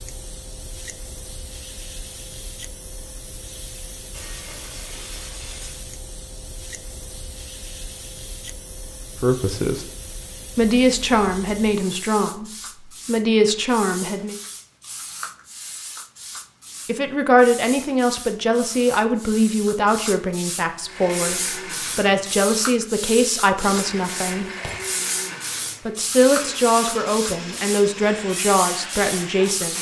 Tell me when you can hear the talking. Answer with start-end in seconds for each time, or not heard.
9.2-9.8, 10.6-14.3, 16.9-24.4, 25.9-29.7.